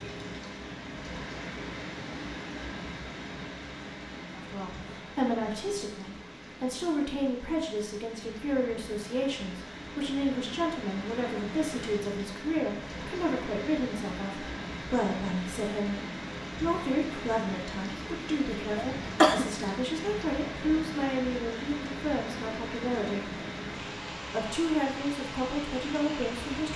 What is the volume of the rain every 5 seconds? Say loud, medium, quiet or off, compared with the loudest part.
loud, medium, loud, loud, loud, loud.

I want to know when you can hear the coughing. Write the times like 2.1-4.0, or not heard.
18.8-19.4.